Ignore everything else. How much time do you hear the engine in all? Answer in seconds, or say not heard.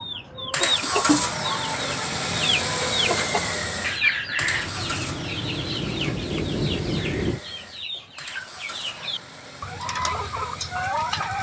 11 s.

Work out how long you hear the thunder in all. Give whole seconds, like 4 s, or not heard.
3 s.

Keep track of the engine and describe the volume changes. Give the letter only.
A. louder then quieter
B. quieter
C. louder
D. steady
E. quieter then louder
B.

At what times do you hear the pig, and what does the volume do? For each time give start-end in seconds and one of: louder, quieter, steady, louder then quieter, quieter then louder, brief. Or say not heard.
not heard.